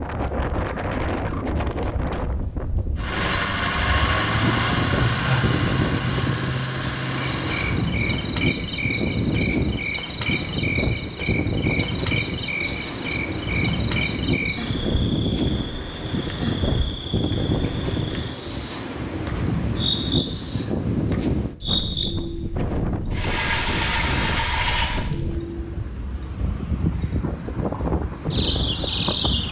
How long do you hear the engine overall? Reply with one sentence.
You can hear the engine for 7 seconds altogether.